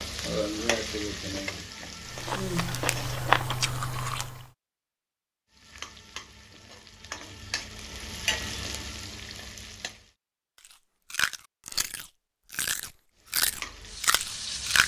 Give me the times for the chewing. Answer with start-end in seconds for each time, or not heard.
2.0-4.5, 11.1-14.8.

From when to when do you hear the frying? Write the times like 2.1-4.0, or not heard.
0.0-3.3, 5.5-10.1, 13.2-14.8.